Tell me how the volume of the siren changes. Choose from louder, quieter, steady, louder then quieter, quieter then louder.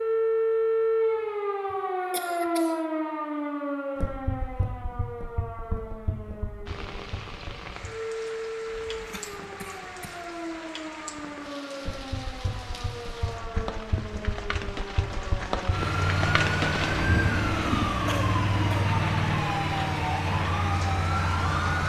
quieter then louder.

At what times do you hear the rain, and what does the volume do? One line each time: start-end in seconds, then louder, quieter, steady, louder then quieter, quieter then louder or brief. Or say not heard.
6.7-21.8 louder then quieter.